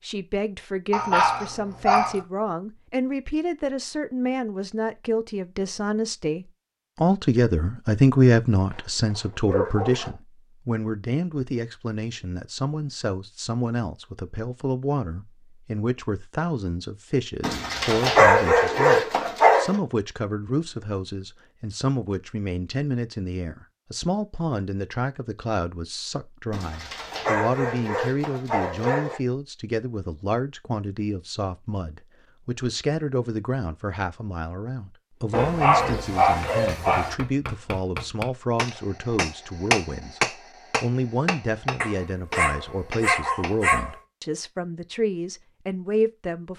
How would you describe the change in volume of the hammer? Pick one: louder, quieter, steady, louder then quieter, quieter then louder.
louder then quieter.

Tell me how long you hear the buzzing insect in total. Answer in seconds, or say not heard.
not heard.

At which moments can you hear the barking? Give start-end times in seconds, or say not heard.
0.9-2.2, 8.8-10.1, 17.4-19.8, 26.5-29.2, 35.3-37.1, 41.8-44.0.